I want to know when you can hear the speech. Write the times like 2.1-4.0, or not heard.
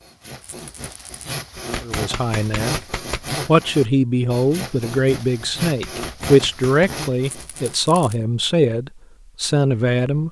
1.8-2.8, 3.5-10.2.